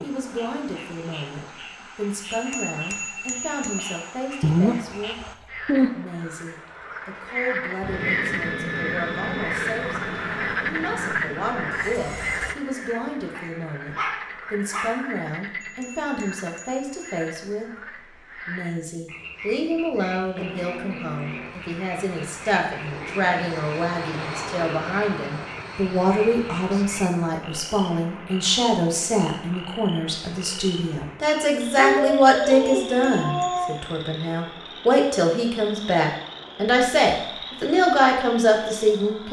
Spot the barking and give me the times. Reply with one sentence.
The barking can be heard from 4.4 to 5.9 s, from 13.3 to 15.1 s and from 31.8 to 33.7 s.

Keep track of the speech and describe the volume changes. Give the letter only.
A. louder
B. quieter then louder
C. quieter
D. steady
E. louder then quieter
A.